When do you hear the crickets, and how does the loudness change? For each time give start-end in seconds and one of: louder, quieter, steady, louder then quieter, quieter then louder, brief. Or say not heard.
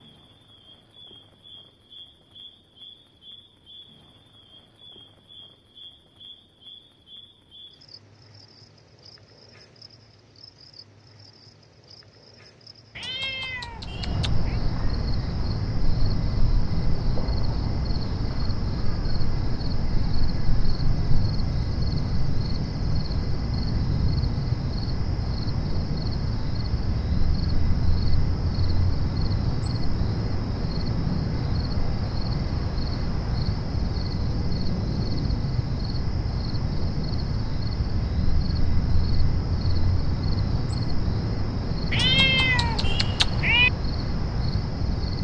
0.0-45.2 louder.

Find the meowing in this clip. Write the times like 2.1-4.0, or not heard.
12.9-14.6, 41.9-43.7.